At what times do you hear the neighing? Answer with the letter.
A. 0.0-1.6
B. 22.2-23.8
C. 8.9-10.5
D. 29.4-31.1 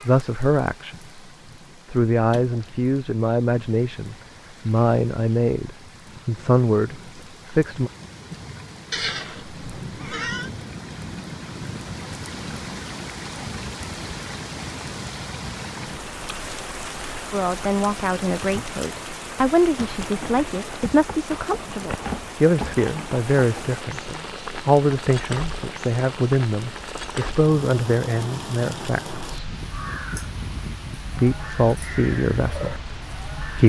C.